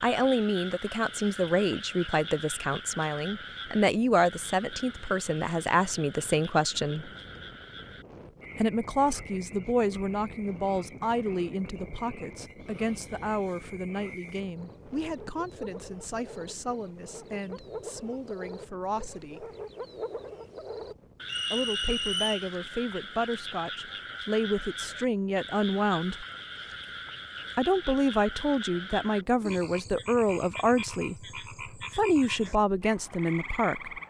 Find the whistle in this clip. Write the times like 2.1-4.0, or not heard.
21.2-22.5.